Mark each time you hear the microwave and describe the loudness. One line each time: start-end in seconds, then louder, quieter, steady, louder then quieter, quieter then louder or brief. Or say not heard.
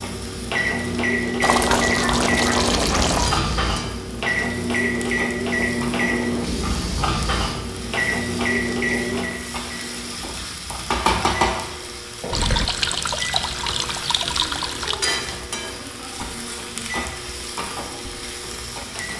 0.0-19.1 quieter.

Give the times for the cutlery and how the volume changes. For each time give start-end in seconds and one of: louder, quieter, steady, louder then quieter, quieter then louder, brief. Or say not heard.
not heard.